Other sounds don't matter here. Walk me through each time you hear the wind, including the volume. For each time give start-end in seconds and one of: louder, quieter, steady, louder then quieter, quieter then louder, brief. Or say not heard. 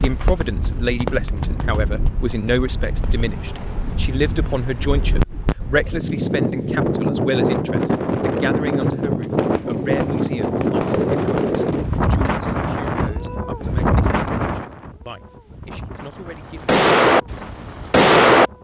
0.0-18.5 louder then quieter.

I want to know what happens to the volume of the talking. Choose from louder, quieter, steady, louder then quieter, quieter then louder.
quieter.